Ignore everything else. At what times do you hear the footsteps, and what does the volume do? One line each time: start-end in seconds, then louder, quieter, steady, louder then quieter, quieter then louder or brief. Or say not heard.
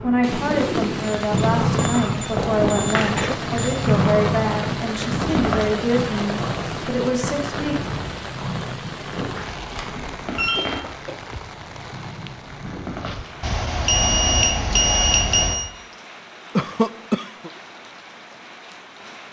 not heard.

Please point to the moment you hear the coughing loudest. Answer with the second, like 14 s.
17 s.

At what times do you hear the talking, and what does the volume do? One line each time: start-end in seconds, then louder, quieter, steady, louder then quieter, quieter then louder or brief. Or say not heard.
0.0-7.8 steady.